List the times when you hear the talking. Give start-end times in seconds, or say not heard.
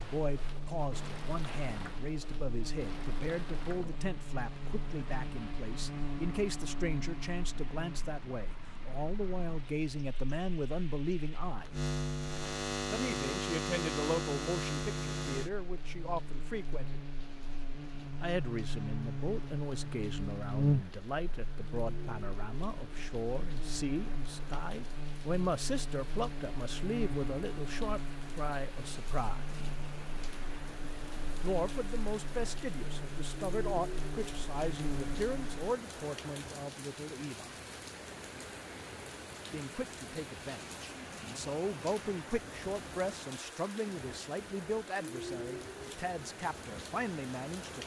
0.0-11.8, 12.9-17.0, 18.2-29.4, 31.4-37.5, 39.5-47.8.